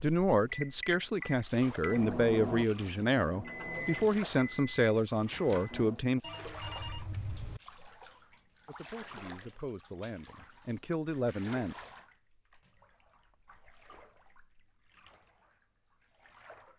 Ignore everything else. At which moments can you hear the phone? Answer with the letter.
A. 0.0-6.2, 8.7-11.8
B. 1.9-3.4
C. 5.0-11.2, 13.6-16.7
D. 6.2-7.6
D.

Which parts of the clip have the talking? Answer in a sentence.
The talking can be heard from 0.0 to 6.2 s and from 8.7 to 11.8 s.